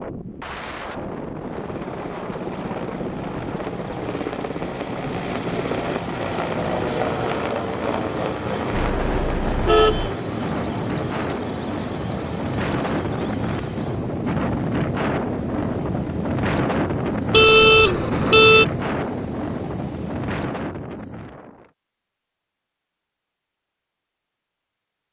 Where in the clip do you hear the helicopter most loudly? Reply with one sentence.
The loudest moment of the helicopter is at 7 seconds.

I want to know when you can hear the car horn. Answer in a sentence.
The car horn can be heard from 8.9 to 10.1 s and from 17.3 to 18.6 s.